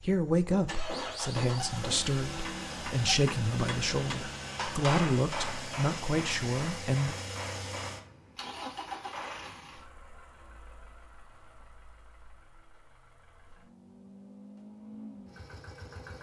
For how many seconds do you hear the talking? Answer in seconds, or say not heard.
7 s.